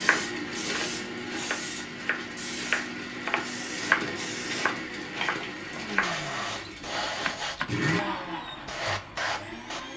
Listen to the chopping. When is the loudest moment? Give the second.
4 s.